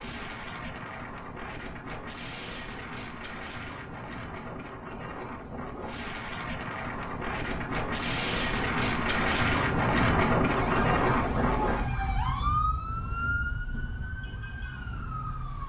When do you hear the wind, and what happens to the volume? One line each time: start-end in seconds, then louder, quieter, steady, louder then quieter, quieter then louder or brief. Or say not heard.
0.0-15.6 louder then quieter.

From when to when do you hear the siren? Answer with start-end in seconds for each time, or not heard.
10.5-15.6.